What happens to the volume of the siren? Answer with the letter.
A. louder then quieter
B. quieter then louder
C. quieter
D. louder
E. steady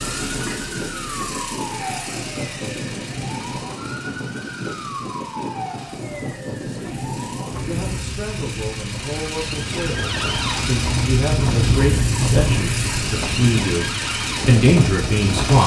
D.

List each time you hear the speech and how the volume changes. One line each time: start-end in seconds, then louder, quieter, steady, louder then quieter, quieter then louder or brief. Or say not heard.
6.7-15.6 louder.